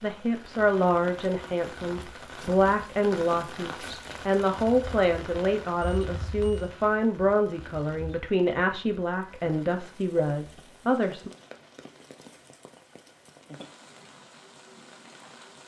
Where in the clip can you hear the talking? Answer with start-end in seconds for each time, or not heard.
0.0-11.3.